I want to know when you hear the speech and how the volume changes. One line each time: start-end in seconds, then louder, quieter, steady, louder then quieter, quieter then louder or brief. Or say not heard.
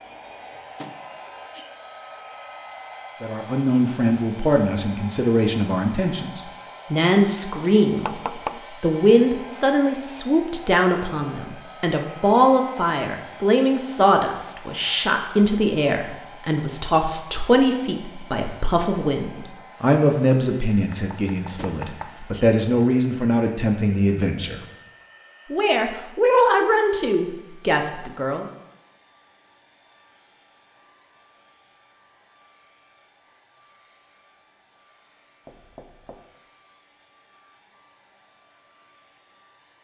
3.2-24.6 steady
25.5-28.4 brief.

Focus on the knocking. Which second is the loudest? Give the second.
8 s.